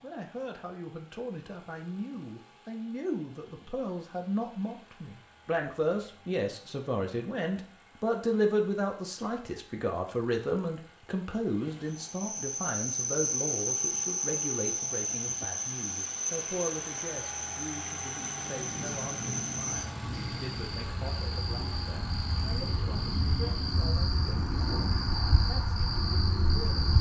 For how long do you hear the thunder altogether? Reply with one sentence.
You can hear the thunder for 3 seconds altogether.